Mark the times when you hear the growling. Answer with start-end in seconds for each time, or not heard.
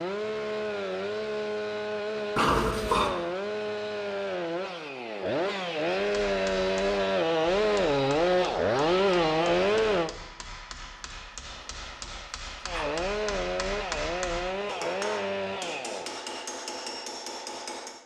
2.4-3.1, 10.9-12.8.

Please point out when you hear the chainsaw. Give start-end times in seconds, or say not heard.
0.0-10.1, 12.7-16.1.